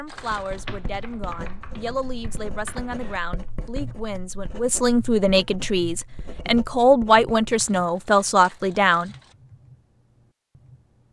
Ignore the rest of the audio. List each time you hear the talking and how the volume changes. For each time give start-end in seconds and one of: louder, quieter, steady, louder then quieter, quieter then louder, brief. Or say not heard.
0.0-9.1 louder.